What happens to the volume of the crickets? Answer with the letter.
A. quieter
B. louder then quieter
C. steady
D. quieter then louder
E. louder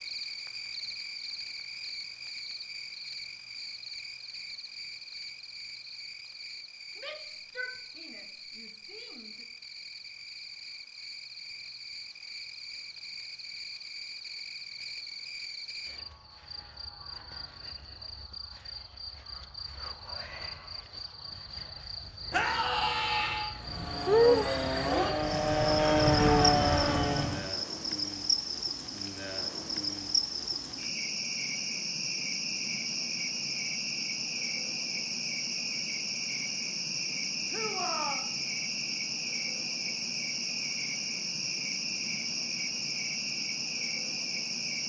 E.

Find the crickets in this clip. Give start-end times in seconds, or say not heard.
0.0-44.8.